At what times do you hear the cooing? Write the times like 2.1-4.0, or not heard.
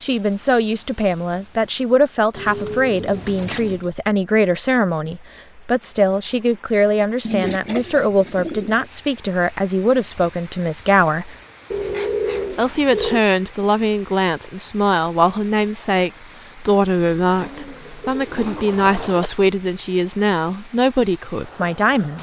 2.4-3.9, 7.2-8.8, 11.7-13.2, 17.2-19.3.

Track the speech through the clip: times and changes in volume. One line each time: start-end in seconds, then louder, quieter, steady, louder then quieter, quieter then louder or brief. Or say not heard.
0.0-11.3 steady
12.5-22.1 steady.